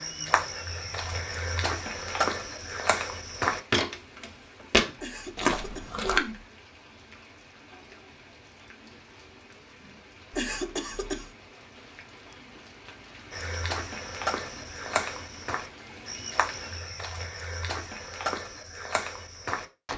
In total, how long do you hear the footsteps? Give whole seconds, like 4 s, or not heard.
13 s.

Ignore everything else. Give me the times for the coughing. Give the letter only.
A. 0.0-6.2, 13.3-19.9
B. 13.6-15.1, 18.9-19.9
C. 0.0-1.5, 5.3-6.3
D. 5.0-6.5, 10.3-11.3
D.